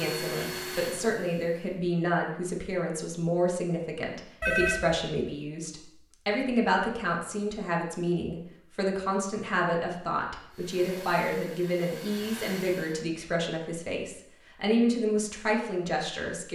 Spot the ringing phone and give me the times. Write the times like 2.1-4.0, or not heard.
4.4-5.0.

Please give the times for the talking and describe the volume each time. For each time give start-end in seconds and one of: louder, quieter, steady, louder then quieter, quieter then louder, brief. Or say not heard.
0.0-16.5 steady.